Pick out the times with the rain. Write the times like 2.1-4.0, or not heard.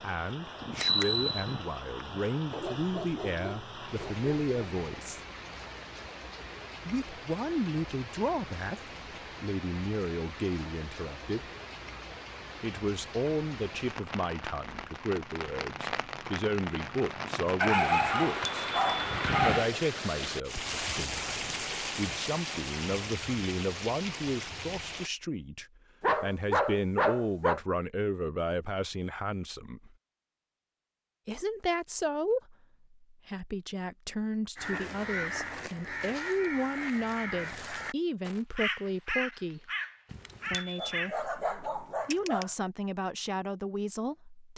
0.0-25.1.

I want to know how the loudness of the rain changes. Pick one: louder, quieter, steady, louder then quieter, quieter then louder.
louder.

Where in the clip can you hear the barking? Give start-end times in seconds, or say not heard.
2.5-4.9, 17.6-19.7, 26.0-27.6, 40.8-42.5.